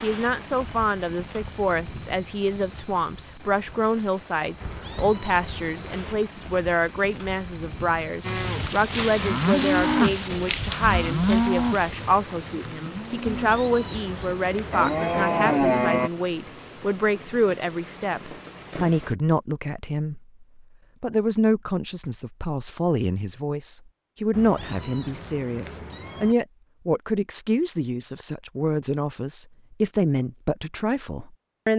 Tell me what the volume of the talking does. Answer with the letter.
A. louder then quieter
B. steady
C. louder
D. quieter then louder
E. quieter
B.